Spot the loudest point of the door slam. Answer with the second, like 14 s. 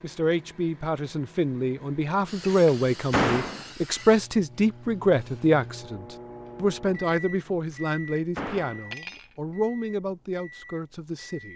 3 s.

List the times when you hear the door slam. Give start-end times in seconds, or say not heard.
2.5-3.6, 7.7-8.9.